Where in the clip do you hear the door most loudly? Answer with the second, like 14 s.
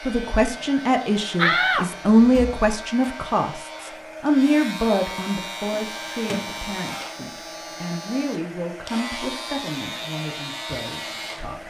2 s.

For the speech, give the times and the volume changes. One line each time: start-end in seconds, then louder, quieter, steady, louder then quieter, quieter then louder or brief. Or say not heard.
0.0-11.6 quieter.